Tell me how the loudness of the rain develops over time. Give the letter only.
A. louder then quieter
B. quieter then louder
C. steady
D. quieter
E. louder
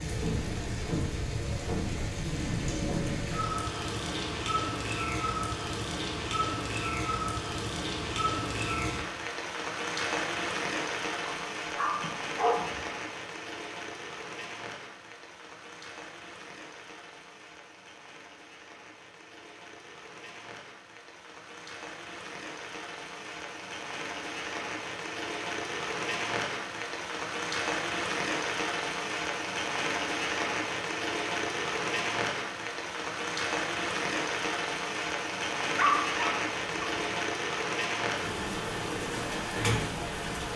B.